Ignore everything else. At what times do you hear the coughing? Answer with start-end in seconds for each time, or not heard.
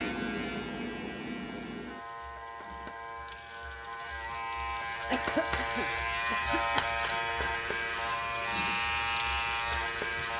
5.0-6.8.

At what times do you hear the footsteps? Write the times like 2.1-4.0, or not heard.
not heard.